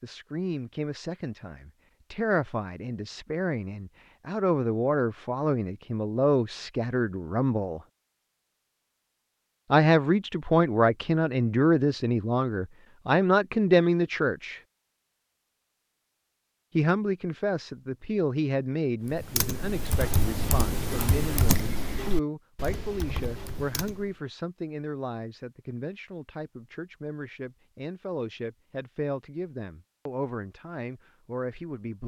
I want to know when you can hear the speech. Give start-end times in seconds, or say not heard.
0.0-7.8, 9.7-14.6, 16.8-32.0.